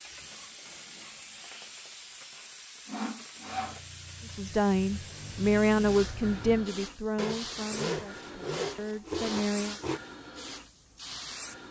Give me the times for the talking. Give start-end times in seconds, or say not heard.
4.2-9.8.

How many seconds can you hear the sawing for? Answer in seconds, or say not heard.
4 s.